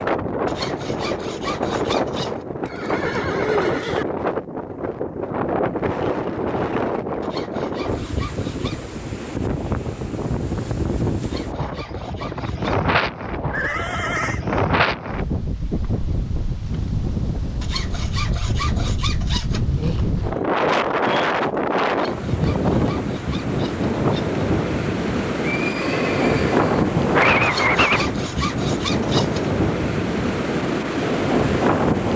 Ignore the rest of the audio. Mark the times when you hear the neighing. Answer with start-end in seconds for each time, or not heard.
2.6-4.0, 13.5-14.4, 25.4-27.2.